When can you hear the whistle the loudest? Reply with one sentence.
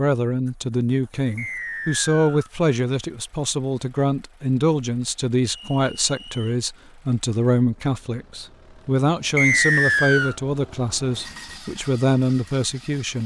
The volume of the whistle peaks at 10 seconds.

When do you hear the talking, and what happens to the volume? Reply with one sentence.
The talking can be heard from 0.0 to 13.2 s, at a steady volume.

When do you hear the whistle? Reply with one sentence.
You can hear the whistle from 1.4 to 2.5 s, from 5.7 to 6.5 s and from 9.3 to 10.3 s.